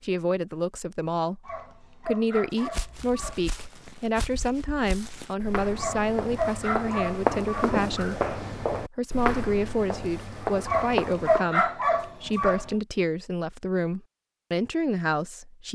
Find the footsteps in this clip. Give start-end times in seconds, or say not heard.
2.5-11.4.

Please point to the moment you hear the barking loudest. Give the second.
11 s.